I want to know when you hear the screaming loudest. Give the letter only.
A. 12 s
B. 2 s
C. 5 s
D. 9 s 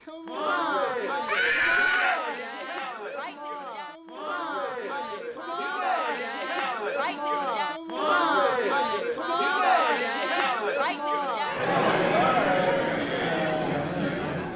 B.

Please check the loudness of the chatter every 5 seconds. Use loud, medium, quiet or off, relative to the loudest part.
medium, loud, loud.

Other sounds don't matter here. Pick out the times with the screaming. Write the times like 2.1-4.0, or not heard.
1.2-2.2, 11.4-12.6.